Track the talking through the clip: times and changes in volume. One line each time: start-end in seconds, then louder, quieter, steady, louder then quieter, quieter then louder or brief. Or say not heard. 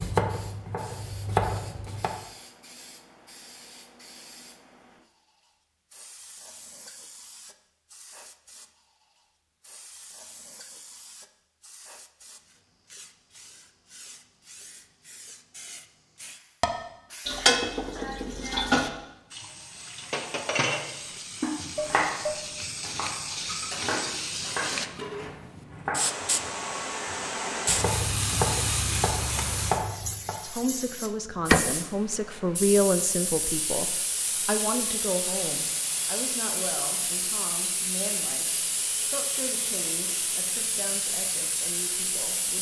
30.4-42.5 quieter.